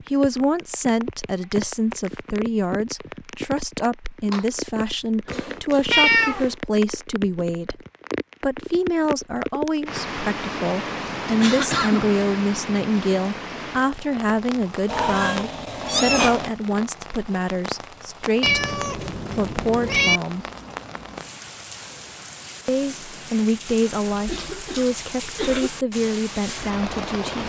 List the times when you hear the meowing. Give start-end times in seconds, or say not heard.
5.2-6.5, 14.8-16.5, 18.4-20.2.